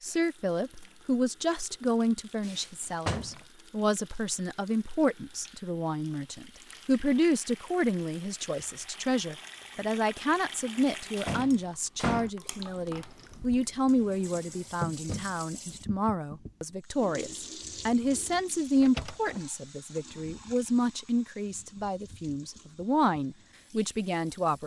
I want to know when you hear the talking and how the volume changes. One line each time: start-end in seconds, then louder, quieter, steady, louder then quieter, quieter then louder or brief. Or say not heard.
0.0-24.6 steady.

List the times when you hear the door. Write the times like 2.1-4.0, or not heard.
2.4-3.5, 10.8-12.3, 17.6-19.4.